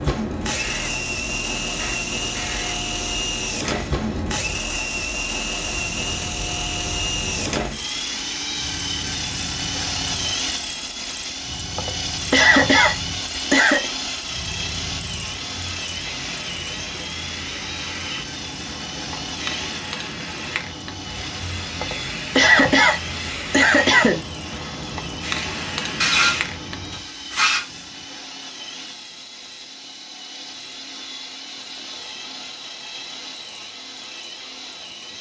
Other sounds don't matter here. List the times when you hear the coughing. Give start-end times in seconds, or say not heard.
11.8-13.9, 21.8-24.2.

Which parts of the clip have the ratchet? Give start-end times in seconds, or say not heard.
26.0-27.6.